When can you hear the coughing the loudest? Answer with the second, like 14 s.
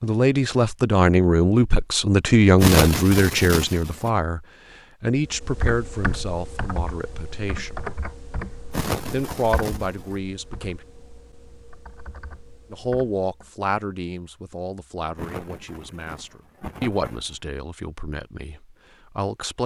3 s.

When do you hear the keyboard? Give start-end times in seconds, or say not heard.
5.2-13.5.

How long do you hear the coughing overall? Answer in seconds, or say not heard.
5 s.